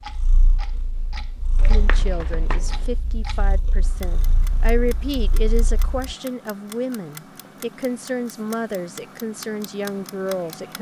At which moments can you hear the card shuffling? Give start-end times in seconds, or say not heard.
1.6-3.0.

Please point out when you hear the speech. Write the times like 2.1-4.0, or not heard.
1.6-10.7.